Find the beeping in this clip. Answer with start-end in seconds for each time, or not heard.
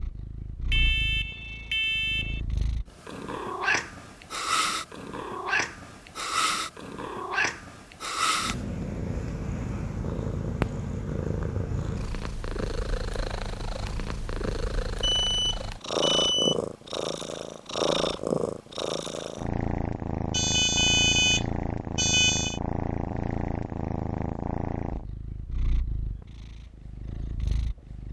0.7-2.4, 15.0-16.6, 20.3-22.6.